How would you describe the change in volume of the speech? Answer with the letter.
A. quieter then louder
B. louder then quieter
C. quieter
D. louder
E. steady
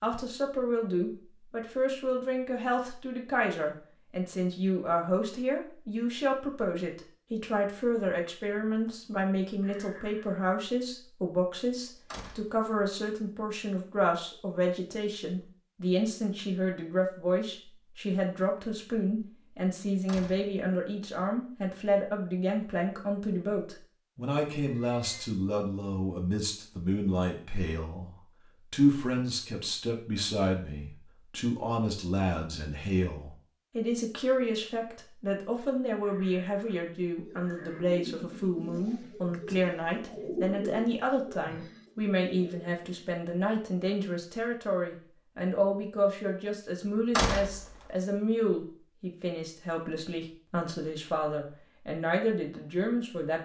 E.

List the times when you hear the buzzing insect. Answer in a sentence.
You can't hear the buzzing insect here.